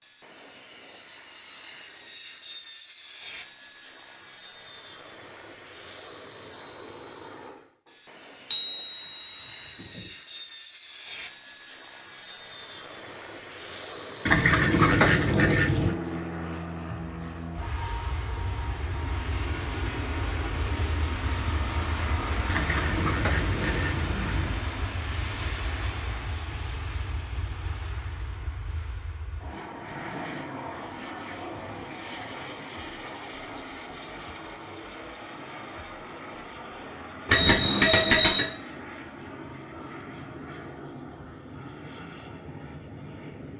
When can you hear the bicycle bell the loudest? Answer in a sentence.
The loudest moment of the bicycle bell is at 38 seconds.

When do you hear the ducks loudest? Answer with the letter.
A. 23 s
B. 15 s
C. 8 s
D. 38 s
B.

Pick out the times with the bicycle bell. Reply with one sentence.
You can hear the bicycle bell from 8.5 to 10.0 s and from 37.2 to 38.5 s.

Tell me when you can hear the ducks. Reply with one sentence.
You can hear the ducks from 14.2 to 15.9 s and from 22.4 to 24.5 s.